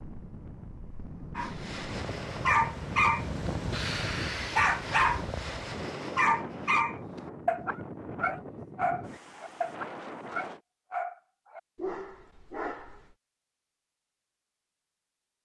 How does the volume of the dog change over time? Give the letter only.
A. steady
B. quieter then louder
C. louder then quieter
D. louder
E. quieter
E.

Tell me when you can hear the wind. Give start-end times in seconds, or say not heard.
0.0-10.6.